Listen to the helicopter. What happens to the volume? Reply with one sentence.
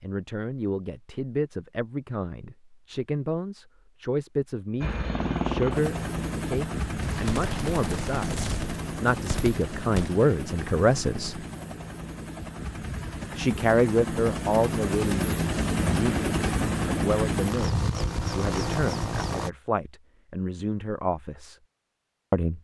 The volume of the helicopter goes down, then up.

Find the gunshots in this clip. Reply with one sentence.
The gunshots can be heard from 7.0 to 10.2 s.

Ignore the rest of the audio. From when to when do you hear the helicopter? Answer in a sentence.
You can hear the helicopter from 4.8 to 19.5 s.